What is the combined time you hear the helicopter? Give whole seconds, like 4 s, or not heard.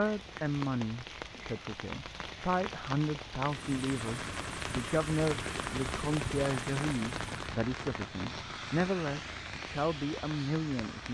4 s.